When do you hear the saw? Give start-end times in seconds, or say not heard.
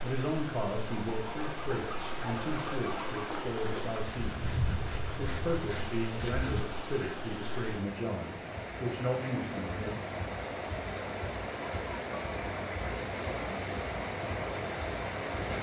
1.1-6.7.